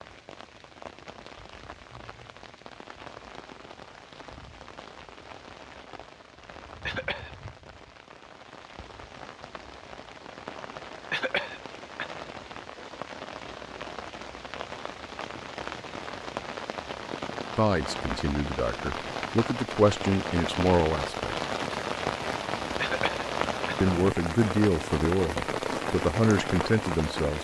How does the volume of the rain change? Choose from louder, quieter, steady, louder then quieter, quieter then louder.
louder.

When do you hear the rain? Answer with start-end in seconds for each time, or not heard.
0.0-27.3.